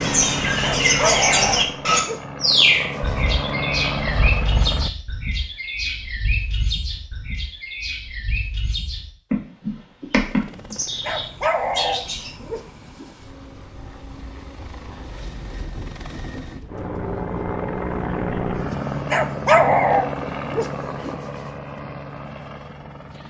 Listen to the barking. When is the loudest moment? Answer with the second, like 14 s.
20 s.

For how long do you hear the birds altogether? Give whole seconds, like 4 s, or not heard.
12 s.